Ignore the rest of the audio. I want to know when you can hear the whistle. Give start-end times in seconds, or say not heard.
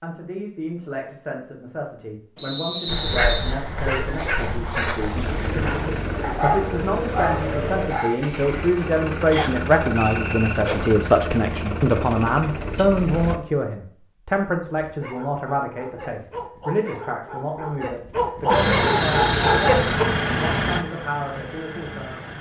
2.4-3.5, 9.3-10.6, 18.8-19.8.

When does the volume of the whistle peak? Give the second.
3 s.